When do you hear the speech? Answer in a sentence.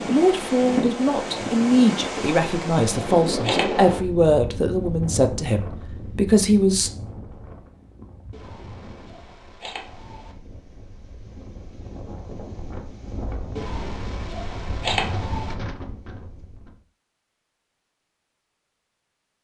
You can hear the speech from 0.0 to 6.9 s.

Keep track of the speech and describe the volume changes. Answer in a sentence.
The volume of the speech stays about the same.